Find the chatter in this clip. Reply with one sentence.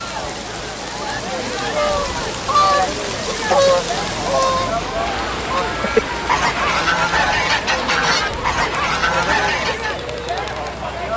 The chatter can be heard from 0.0 to 11.1 s.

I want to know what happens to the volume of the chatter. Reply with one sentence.
The loudness of the chatter stays about the same.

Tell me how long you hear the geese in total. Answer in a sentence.
You can hear the geese for 8 seconds altogether.